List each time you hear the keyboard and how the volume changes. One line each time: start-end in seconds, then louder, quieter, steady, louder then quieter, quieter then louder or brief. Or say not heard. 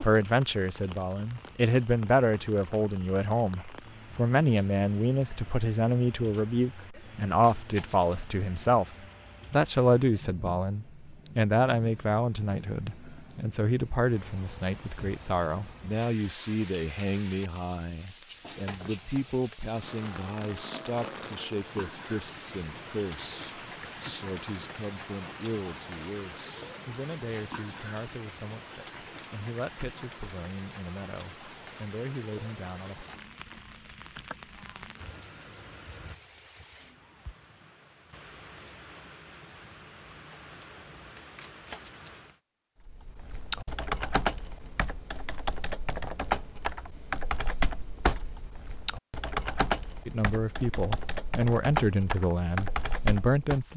42.9-53.6 steady.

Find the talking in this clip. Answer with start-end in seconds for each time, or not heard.
0.0-33.0, 50.0-53.7.